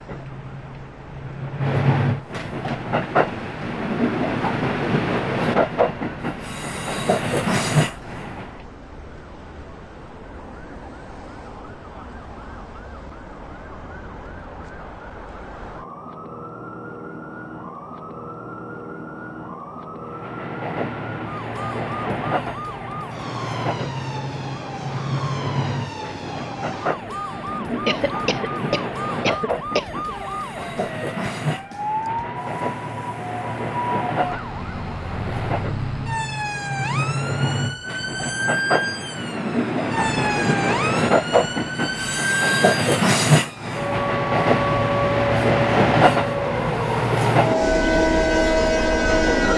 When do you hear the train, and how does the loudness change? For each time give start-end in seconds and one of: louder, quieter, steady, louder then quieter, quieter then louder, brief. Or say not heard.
0.0-8.6 steady
20.1-49.5 louder.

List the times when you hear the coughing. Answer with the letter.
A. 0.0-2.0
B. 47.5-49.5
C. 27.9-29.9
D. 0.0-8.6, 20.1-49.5
C.